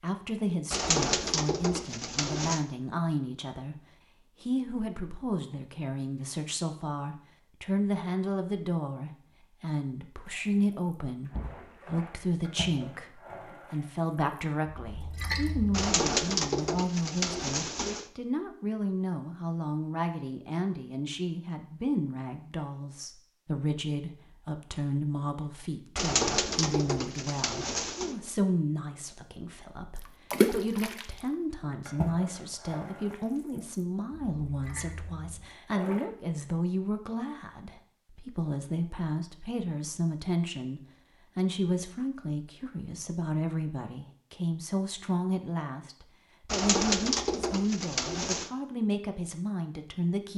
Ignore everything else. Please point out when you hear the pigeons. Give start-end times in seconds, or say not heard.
0.7-2.6, 15.7-18.1, 25.9-28.1, 46.5-48.5.